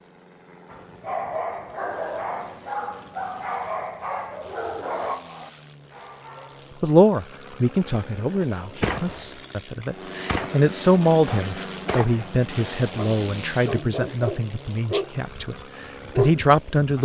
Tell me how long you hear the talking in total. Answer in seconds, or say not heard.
10 s.